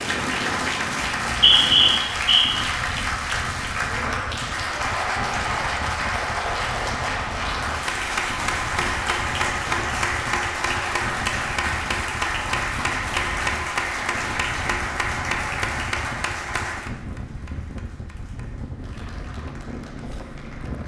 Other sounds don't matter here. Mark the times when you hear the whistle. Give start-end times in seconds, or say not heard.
1.0-2.6.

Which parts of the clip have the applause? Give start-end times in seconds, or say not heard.
0.0-20.8.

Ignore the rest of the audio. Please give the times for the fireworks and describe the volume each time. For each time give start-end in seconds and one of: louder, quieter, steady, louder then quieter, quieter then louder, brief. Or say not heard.
not heard.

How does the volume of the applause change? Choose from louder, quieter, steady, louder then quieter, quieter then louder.
quieter.